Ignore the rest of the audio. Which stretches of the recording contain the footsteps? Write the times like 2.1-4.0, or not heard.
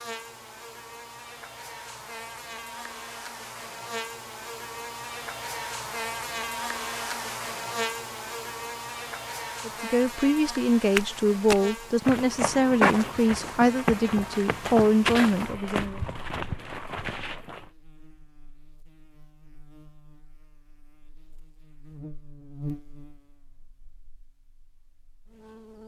10.4-17.6.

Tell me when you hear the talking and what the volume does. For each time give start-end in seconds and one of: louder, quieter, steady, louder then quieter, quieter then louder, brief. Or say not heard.
9.7-16.0 steady.